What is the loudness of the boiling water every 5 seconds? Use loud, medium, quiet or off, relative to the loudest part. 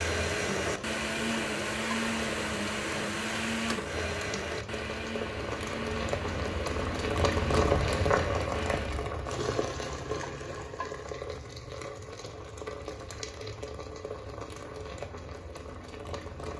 medium, loud, medium, medium.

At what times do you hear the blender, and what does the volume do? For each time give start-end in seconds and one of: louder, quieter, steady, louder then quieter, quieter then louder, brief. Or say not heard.
0.0-8.9 quieter.